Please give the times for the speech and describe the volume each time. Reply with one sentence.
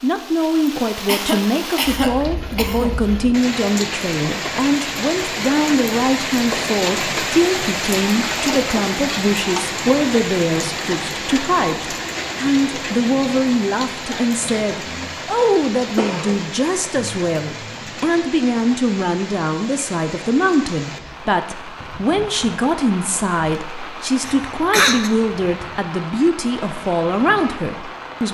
You can hear the speech from 0.0 to 28.3 s, at a steady volume.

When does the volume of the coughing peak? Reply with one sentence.
The volume of the coughing peaks at 25 seconds.